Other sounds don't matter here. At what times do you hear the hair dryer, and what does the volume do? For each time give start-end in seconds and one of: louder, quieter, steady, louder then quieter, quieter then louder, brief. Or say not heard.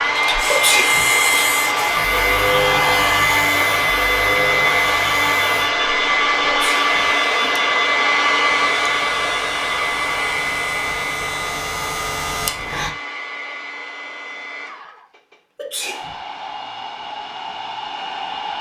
0.0-18.5 quieter.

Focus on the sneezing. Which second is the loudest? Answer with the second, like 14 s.
1 s.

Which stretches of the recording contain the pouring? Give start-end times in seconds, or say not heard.
not heard.